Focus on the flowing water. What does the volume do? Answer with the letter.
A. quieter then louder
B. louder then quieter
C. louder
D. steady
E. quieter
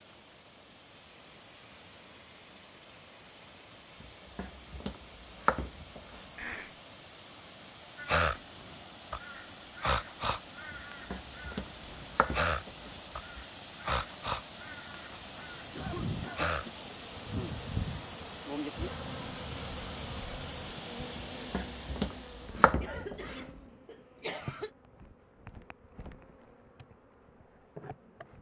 C.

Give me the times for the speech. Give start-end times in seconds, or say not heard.
not heard.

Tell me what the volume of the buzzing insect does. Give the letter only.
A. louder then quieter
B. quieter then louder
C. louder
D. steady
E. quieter
E.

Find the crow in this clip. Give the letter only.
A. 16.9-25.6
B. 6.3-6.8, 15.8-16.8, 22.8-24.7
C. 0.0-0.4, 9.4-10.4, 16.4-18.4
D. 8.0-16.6
D.